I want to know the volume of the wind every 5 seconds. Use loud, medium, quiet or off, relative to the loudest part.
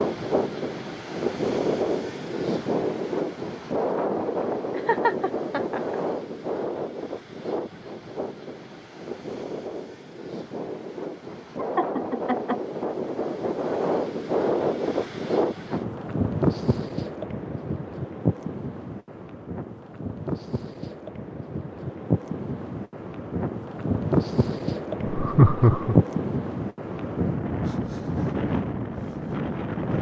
loud, medium, loud, loud, loud, loud.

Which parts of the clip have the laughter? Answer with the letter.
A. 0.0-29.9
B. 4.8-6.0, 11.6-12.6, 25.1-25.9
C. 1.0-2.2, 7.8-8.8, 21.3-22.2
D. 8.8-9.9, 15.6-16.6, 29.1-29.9
B.